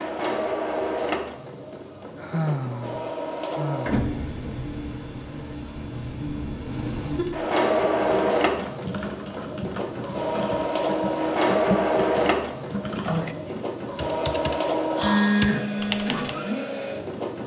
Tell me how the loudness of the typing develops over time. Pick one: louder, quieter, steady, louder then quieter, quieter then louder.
louder.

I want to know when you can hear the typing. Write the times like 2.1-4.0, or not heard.
7.8-16.2.